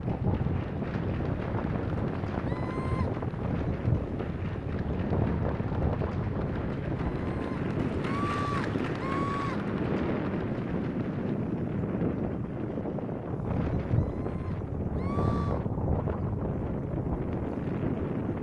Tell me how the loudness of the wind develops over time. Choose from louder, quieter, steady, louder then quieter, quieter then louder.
steady.